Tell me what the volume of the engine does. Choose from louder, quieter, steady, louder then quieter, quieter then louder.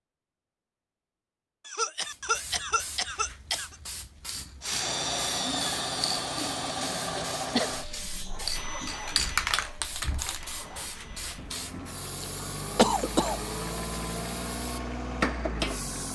quieter then louder.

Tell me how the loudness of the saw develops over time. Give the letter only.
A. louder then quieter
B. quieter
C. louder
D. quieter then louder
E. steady
B.